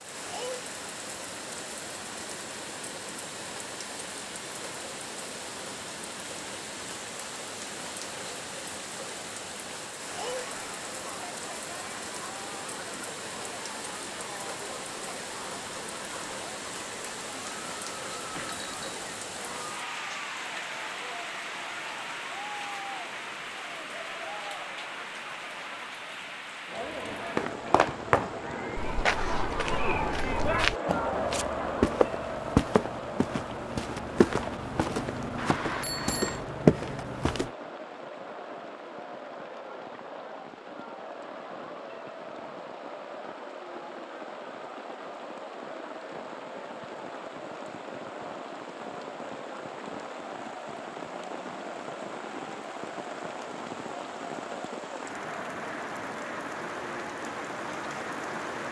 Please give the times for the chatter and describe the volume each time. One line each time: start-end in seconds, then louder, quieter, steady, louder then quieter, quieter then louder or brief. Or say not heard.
10.1-58.6 louder then quieter.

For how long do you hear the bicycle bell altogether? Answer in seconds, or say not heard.
2 s.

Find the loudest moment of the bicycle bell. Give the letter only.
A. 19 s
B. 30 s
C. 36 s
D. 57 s
C.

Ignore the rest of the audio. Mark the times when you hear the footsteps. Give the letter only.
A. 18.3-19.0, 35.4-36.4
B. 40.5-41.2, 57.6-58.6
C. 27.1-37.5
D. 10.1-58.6
C.